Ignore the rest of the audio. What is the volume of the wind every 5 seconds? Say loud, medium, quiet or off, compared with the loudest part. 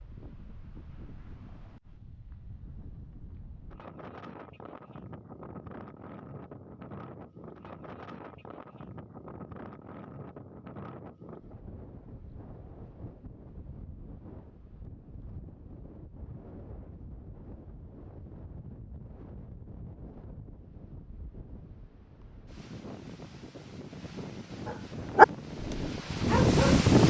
quiet, quiet, quiet, quiet, quiet, loud.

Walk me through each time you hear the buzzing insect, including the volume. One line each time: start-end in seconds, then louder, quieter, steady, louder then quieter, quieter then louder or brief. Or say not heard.
not heard.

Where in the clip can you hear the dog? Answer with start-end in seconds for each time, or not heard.
25.1-26.9.